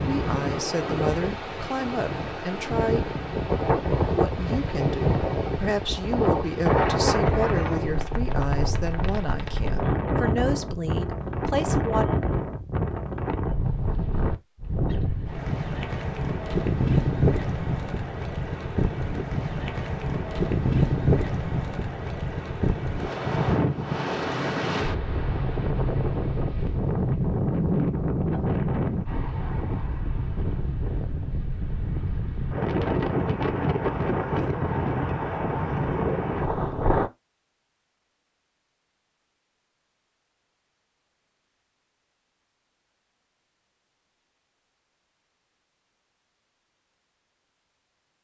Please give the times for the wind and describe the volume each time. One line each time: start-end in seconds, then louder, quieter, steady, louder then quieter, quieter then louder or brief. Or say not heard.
0.0-37.1 steady.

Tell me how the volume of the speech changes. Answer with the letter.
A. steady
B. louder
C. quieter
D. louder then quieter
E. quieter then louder
A.